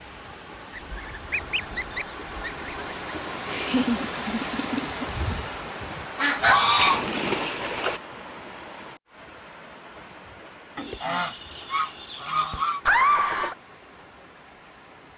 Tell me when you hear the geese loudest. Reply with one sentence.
The volume of the geese peaks at 7 seconds.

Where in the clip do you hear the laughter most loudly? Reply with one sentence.
The volume of the laughter peaks at 13 seconds.